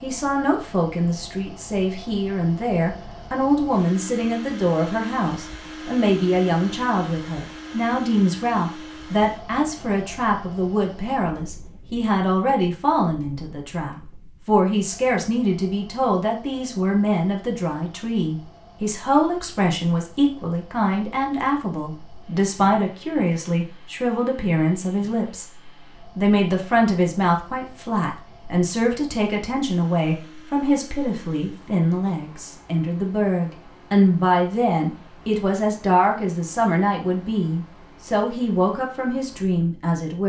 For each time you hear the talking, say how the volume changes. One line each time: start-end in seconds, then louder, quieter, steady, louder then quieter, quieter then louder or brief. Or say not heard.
0.0-40.2 steady.